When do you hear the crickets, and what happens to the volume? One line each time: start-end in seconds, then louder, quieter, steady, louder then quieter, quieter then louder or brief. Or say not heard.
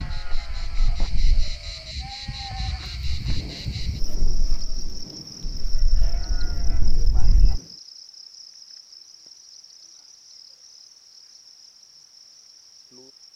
0.0-13.3 quieter.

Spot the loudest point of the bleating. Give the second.
7 s.